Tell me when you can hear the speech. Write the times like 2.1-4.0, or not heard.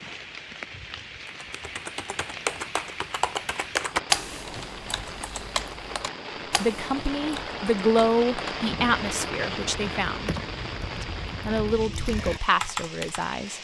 6.6-10.3, 11.0-13.5.